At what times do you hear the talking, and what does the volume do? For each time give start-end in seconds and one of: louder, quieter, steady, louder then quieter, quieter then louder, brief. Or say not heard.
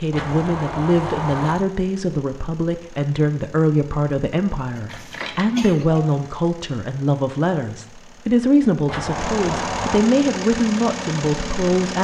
0.0-11.9 steady.